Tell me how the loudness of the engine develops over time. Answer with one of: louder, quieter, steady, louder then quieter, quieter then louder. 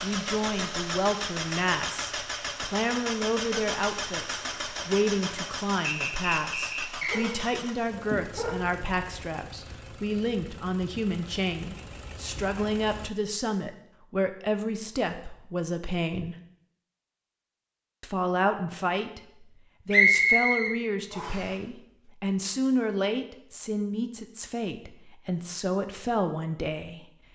quieter.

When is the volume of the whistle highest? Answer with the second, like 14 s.
20 s.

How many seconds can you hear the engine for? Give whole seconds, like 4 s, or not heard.
13 s.